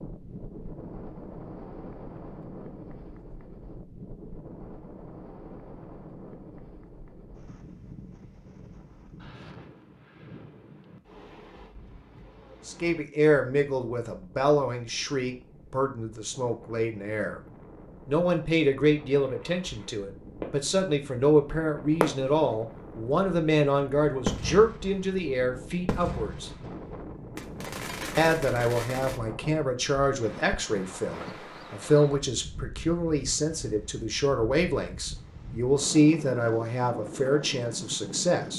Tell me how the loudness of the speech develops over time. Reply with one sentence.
The loudness of the speech stays about the same.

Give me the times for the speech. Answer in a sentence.
You can hear the speech from 12.7 to 17.4 s, from 18.1 to 26.5 s and from 28.1 to 38.5 s.